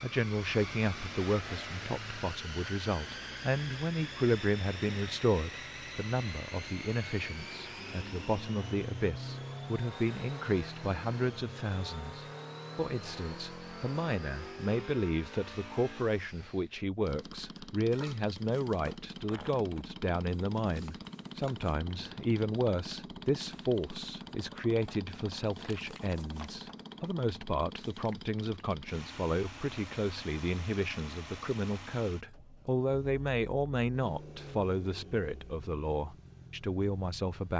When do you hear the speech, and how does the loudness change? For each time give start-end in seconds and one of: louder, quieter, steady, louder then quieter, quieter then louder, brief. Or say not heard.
0.0-37.5 steady.